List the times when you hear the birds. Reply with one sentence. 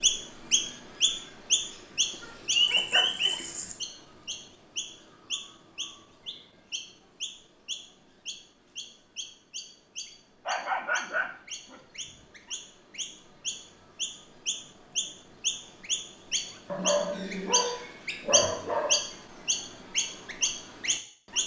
The birds can be heard from 0.0 to 21.4 s.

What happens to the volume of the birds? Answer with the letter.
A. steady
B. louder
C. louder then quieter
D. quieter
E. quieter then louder
E.